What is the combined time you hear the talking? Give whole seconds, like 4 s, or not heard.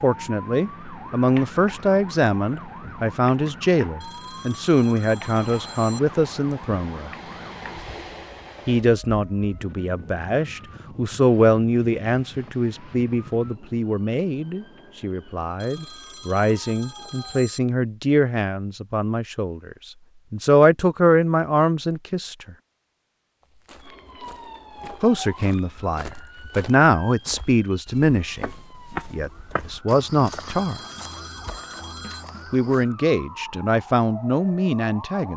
29 s.